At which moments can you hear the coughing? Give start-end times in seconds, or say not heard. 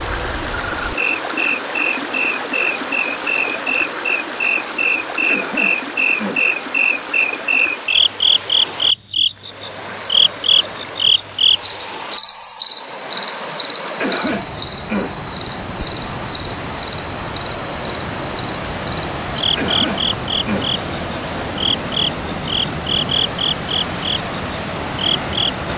5.2-6.5, 13.9-15.2, 19.6-20.8.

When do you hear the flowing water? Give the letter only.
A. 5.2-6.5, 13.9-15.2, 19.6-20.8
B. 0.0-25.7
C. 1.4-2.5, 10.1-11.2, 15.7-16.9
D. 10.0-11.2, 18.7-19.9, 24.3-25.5
B.